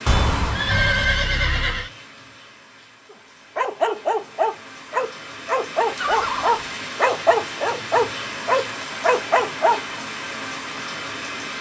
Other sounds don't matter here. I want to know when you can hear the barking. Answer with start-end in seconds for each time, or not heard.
3.1-9.8.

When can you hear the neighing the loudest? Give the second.
1 s.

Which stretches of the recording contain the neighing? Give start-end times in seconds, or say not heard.
0.1-1.9, 6.0-6.7.